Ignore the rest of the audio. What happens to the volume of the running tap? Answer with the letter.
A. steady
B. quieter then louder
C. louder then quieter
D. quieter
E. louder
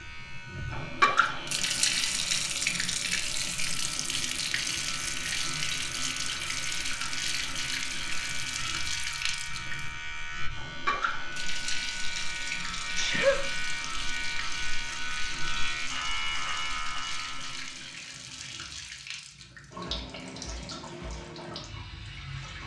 D.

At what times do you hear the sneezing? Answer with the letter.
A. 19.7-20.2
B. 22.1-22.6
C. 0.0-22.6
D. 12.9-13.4
D.